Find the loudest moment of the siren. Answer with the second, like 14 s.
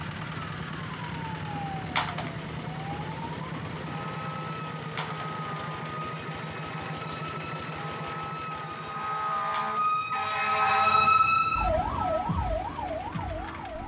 11 s.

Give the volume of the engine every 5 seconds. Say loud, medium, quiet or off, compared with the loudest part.
loud, loud, medium.